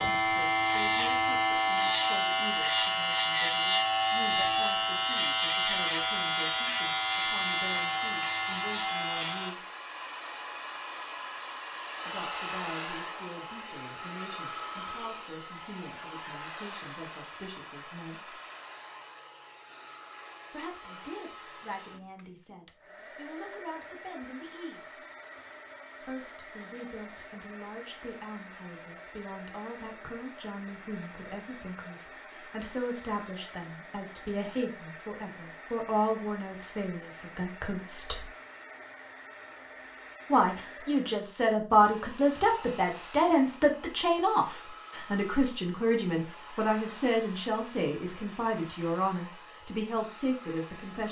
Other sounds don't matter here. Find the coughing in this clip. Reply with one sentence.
You can't hear the coughing here.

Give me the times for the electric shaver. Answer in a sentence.
You can hear the electric shaver from 0.0 to 9.6 s.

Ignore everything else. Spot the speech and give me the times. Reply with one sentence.
The speech can be heard from 0.0 to 9.7 s, from 12.1 to 18.4 s, from 20.5 to 25.0 s, from 26.0 to 38.2 s and from 40.3 to 51.0 s.